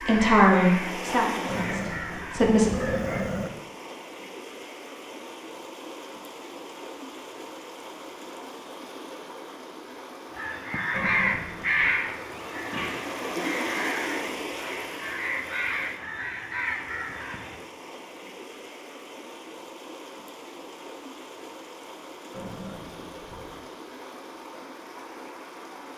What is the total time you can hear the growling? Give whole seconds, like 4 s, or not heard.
4 s.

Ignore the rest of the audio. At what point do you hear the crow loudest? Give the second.
12 s.